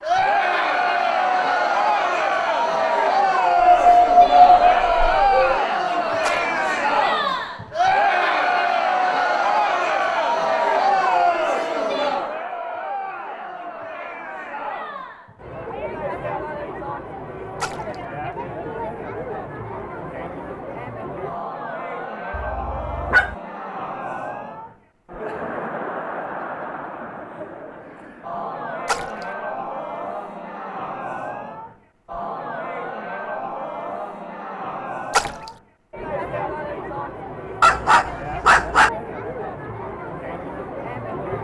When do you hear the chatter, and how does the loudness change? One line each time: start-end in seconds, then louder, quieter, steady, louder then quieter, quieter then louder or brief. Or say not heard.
0.0-41.3 quieter.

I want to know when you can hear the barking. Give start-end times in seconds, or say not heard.
3.5-5.6, 22.3-23.4, 37.6-38.9.